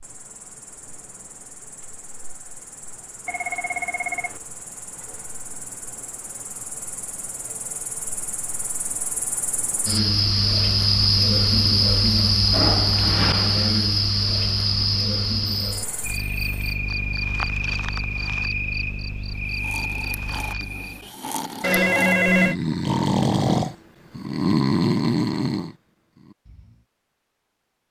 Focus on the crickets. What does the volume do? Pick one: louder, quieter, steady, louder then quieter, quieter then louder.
louder then quieter.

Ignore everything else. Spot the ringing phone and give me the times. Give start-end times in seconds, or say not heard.
3.2-4.4, 15.7-16.9, 21.6-22.6.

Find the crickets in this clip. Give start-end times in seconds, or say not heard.
0.0-21.1.